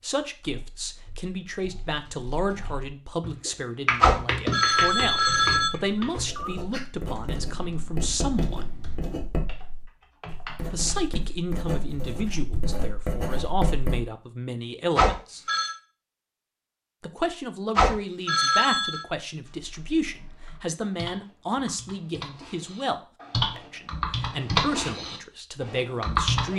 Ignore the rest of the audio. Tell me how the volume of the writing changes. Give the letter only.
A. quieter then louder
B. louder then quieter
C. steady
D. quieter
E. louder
E.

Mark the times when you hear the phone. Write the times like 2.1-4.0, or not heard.
4.0-5.7, 14.9-15.7, 17.8-19.0.